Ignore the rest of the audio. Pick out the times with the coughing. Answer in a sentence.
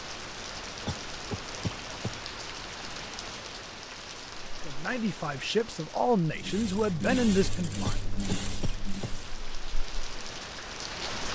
You can hear the coughing from 0.8 to 2.3 s and from 7.8 to 9.2 s.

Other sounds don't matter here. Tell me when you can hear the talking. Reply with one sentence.
The talking can be heard from 4.7 to 8.0 s.